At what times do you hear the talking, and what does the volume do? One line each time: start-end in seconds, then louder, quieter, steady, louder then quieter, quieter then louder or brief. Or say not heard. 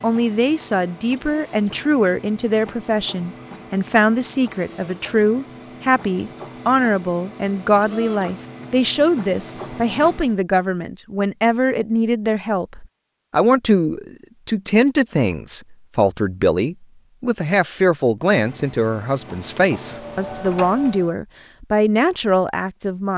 0.0-23.1 steady.